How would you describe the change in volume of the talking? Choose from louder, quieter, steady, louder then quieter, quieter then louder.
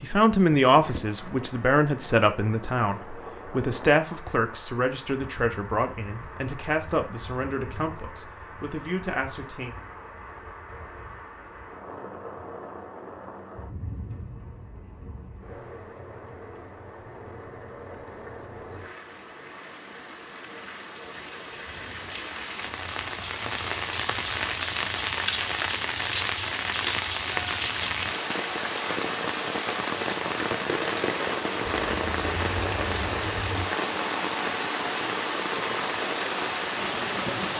quieter.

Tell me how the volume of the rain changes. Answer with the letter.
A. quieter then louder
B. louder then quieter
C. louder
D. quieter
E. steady
C.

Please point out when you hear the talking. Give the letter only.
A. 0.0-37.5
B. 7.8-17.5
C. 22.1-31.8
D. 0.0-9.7
D.